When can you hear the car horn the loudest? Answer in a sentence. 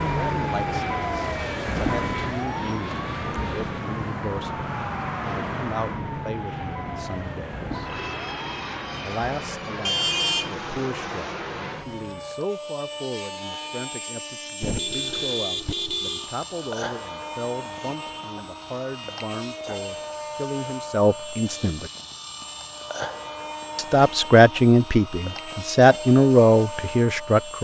The volume of the car horn peaks at 10 seconds.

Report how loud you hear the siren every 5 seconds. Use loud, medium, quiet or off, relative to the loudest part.
loud, medium, medium, off, off, off.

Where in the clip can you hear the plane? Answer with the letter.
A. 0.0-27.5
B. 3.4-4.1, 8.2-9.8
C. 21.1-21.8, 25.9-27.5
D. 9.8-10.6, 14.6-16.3
A.